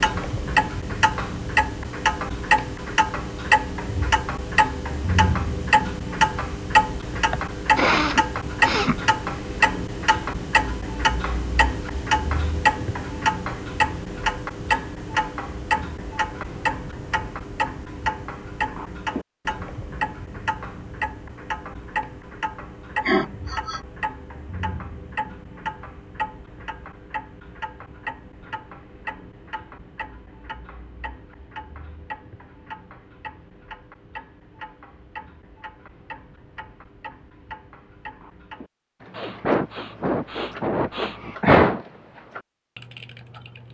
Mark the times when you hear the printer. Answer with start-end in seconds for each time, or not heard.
not heard.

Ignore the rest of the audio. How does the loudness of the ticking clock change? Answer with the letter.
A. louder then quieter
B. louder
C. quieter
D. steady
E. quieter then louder
C.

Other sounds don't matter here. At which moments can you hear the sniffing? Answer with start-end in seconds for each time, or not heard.
7.3-8.9, 23.0-23.8, 39.1-41.8.